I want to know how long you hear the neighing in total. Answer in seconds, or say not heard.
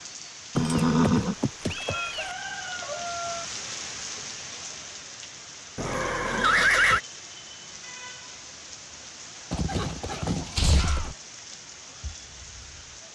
5 s.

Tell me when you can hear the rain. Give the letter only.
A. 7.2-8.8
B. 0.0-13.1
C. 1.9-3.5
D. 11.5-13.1
B.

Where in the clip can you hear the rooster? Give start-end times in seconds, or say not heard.
1.9-3.5.